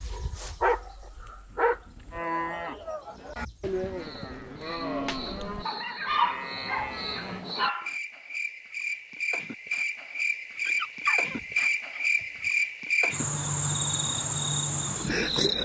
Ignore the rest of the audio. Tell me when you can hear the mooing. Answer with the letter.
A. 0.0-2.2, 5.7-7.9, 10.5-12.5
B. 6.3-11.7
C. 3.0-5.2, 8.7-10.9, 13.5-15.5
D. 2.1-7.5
D.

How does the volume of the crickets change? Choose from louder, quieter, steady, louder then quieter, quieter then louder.
louder.